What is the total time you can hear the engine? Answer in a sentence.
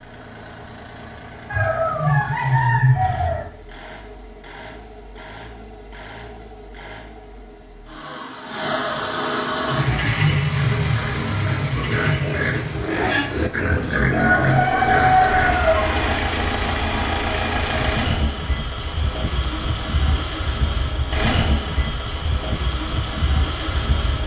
The engine can be heard for 24 seconds in total.